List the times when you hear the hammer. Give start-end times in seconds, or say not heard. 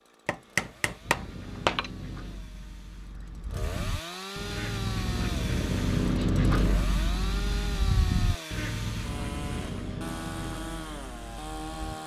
0.2-1.9.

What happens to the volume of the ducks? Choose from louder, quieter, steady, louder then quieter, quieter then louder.
louder then quieter.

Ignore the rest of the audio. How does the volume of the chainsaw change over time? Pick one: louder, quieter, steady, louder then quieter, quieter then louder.
louder.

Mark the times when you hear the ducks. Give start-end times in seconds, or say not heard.
1.0-12.0.